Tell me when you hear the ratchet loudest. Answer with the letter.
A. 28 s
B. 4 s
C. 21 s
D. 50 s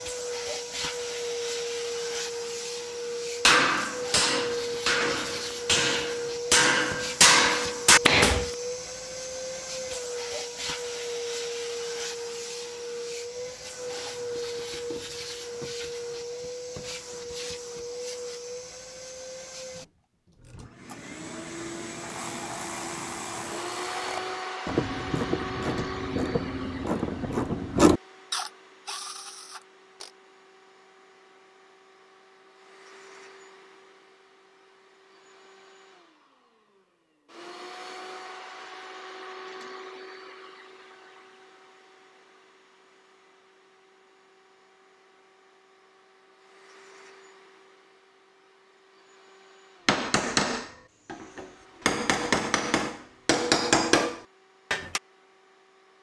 A.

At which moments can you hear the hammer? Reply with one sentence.
The hammer can be heard from 3.5 to 8.4 s and from 49.9 to 55.0 s.